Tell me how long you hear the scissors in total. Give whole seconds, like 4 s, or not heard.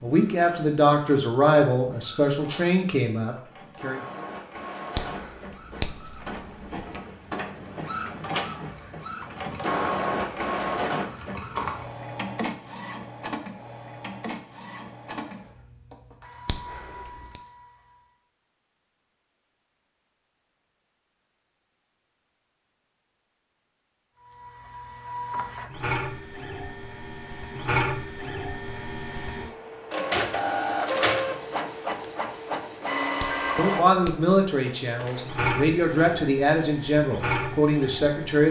4 s.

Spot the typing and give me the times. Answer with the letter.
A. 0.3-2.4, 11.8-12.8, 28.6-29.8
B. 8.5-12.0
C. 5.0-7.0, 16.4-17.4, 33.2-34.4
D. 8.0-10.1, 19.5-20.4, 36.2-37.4
B.